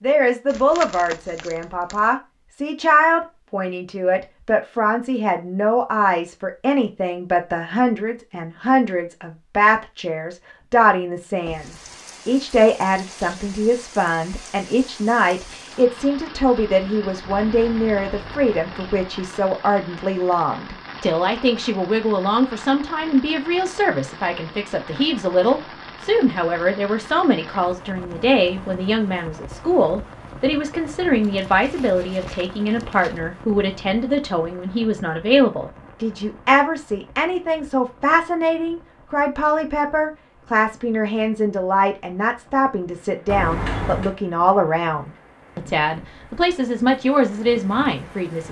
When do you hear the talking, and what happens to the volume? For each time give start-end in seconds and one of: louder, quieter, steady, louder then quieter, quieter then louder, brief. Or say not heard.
0.0-48.4 steady.